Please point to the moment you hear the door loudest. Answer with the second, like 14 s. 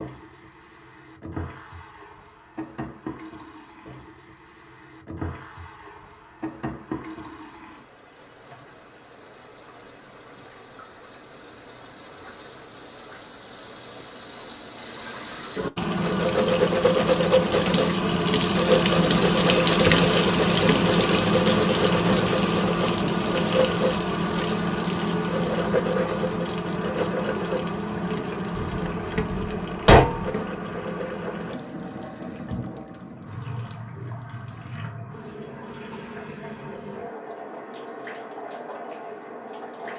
30 s.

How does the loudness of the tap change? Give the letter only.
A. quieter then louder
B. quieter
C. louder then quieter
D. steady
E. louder
C.